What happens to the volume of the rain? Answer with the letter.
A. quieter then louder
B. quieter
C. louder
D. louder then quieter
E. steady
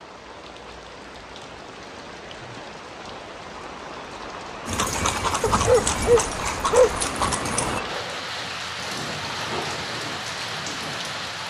C.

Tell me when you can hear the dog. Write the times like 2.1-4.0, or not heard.
5.4-7.0.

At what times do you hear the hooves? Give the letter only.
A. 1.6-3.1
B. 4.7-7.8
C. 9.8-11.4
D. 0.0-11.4
B.